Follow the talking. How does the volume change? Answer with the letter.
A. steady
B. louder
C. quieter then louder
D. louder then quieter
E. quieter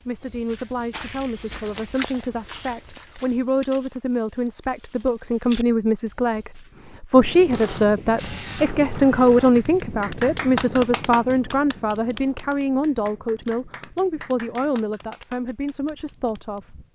D.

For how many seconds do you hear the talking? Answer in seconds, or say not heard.
17 s.